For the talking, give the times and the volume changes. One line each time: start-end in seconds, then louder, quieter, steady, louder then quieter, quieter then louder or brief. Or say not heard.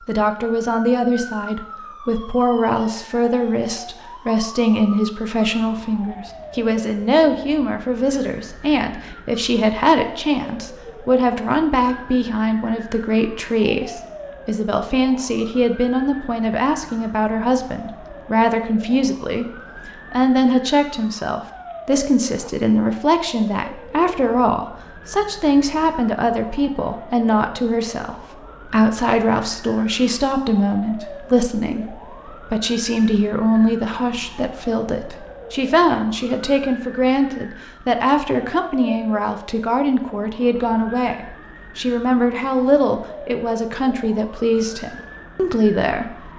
0.1-19.4 steady
20.1-46.1 steady.